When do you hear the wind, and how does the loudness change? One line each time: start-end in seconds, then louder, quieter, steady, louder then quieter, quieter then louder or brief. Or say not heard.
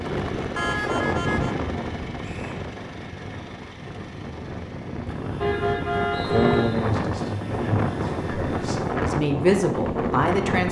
0.0-10.6 quieter then louder.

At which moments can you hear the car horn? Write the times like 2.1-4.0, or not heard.
0.6-1.6, 5.4-6.8.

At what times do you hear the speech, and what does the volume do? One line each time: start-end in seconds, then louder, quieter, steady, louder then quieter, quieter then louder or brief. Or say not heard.
6.2-10.6 quieter then louder.